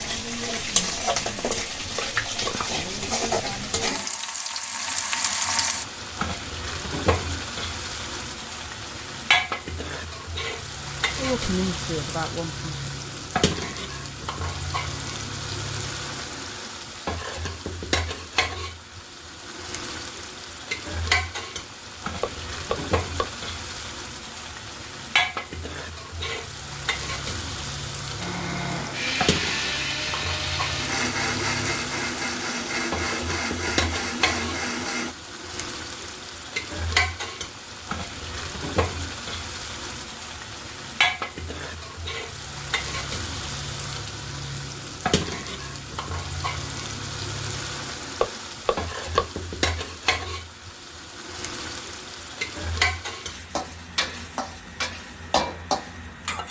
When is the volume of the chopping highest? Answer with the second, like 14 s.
49 s.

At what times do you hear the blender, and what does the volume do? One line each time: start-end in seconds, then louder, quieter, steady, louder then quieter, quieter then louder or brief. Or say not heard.
28.1-35.1 steady.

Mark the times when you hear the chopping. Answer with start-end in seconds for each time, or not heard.
1.5-2.5, 22.2-23.3, 48.2-49.2.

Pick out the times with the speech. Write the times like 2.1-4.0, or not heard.
11.2-12.7.